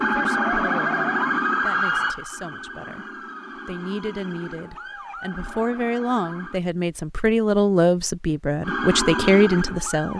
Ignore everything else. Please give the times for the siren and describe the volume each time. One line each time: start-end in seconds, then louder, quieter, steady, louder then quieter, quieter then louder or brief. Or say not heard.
0.0-6.6 quieter
8.6-10.1 brief.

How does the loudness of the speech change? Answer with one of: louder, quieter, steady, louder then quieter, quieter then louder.
louder.